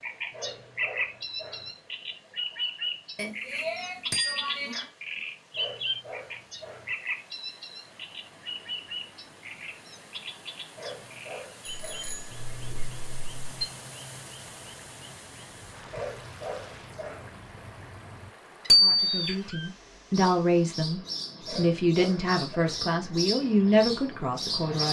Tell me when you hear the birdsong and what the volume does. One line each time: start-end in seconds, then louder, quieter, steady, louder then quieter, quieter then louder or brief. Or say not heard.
0.0-24.8 quieter then louder.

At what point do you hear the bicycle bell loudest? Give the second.
19 s.